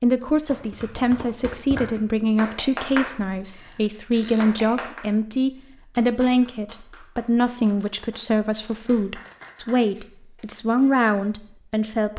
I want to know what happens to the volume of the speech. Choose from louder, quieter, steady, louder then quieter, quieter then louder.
steady.